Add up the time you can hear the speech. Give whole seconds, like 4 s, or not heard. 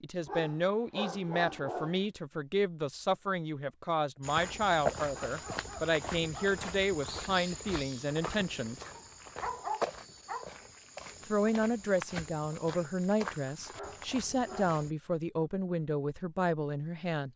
15 s.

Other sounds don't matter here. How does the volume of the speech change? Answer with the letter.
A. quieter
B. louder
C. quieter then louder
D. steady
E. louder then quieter
D.